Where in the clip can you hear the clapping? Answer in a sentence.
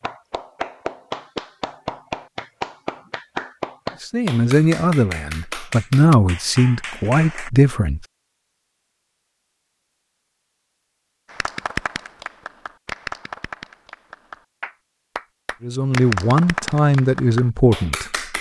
The clapping can be heard from 0.0 to 7.5 s and from 11.2 to 18.3 s.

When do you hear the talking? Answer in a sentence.
You can hear the talking from 4.0 to 8.1 s and from 15.6 to 18.1 s.